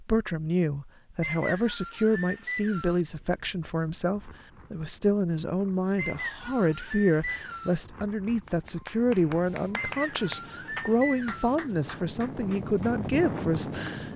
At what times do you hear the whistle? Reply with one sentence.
You can hear the whistle from 1.2 to 3.0 s, from 6.0 to 7.8 s and from 9.8 to 11.6 s.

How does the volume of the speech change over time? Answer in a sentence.
The volume of the speech stays about the same.